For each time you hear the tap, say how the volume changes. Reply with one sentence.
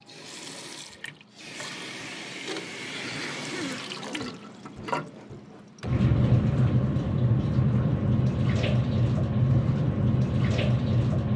You can hear the tap from 0.1 to 11.3 s, getting louder.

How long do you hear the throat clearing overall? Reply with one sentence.
You can hear the throat clearing for 2 seconds altogether.